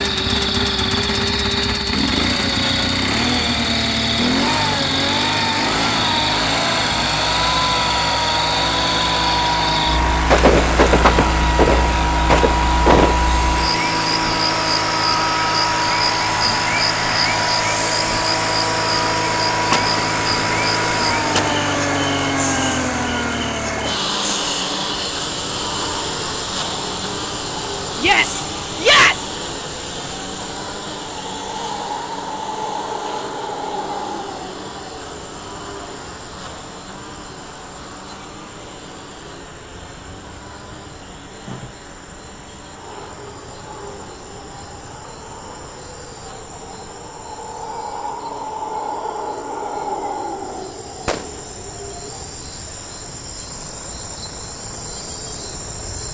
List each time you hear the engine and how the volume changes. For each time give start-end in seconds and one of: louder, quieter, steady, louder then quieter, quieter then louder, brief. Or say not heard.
0.0-56.0 quieter.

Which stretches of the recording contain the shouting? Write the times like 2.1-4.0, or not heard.
27.9-29.2.